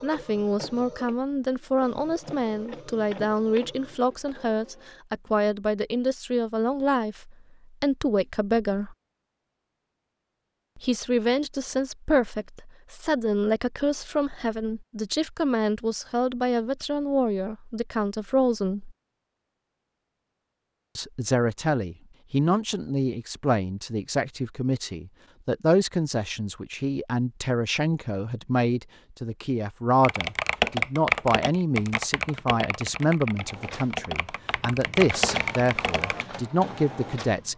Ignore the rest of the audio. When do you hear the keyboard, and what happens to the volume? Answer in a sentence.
The keyboard can be heard from 30.0 to 36.2 s, getting quieter then louder.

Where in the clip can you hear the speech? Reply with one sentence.
You can hear the speech from 0.0 to 8.9 s, from 10.8 to 18.9 s and from 20.9 to 37.5 s.